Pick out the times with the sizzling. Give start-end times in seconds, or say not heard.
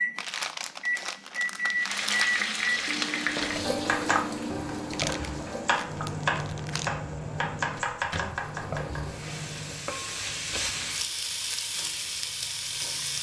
1.8-13.1.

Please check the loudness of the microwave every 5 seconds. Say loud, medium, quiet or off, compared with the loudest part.
loud, medium, off.